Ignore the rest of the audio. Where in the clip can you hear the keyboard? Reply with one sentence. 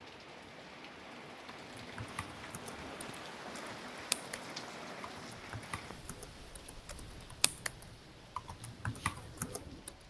The keyboard can be heard from 1.6 to 9.9 s.